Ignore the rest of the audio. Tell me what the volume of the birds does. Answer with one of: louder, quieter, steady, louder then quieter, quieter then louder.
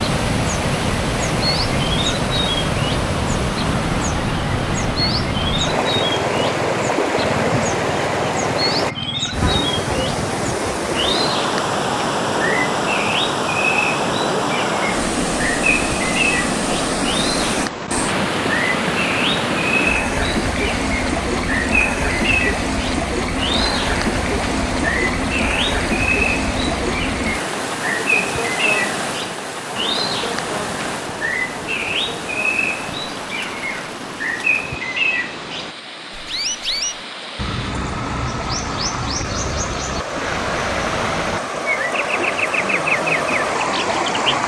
steady.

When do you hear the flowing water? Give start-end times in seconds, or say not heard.
0.0-44.4.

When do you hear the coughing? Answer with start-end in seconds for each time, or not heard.
not heard.